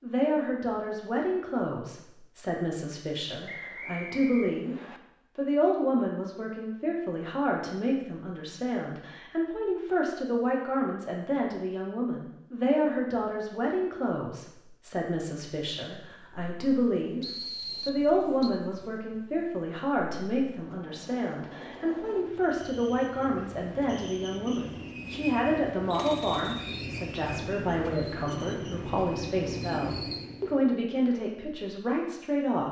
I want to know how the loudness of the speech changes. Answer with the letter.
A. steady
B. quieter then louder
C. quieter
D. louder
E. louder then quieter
A.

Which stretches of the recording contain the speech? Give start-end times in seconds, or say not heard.
0.0-32.6.